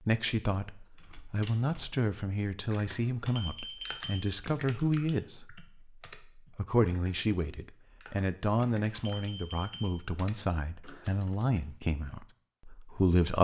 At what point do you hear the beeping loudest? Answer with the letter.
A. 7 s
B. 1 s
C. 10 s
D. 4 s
D.